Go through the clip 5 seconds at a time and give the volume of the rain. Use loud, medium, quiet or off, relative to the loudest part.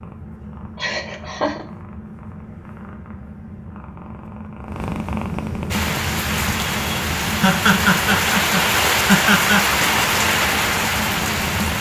off, loud, loud.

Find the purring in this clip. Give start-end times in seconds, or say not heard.
0.0-11.7.